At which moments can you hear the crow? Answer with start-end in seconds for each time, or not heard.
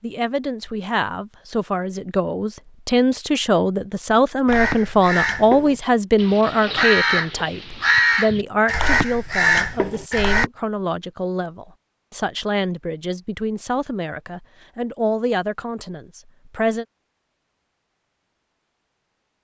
4.5-10.5.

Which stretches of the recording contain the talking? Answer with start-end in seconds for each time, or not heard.
0.0-16.9.